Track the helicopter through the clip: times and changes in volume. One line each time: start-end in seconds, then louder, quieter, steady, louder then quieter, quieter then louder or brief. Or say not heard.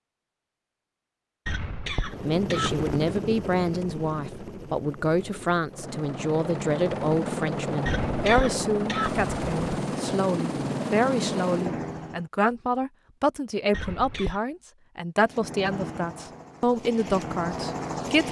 1.9-12.2 quieter then louder
15.2-18.2 brief.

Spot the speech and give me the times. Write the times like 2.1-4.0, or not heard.
2.1-18.2.